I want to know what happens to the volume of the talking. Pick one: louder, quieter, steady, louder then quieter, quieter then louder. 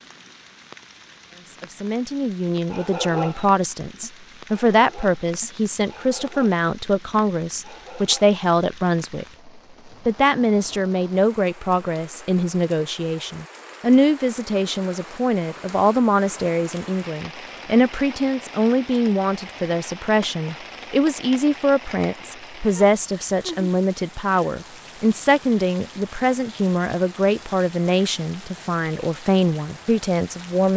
steady.